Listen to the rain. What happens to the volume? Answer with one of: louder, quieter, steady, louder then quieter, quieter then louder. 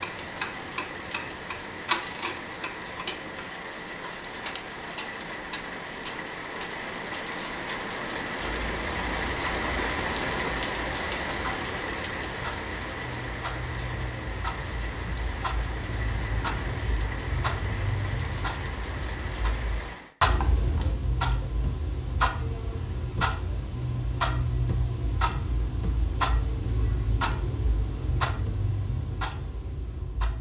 louder then quieter.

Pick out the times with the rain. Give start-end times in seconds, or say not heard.
0.0-20.1.